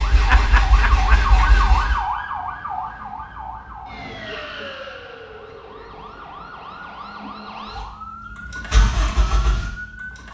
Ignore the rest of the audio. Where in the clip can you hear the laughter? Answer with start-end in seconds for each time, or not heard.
0.1-1.2.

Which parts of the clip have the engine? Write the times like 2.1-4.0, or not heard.
0.0-2.0, 7.7-10.2.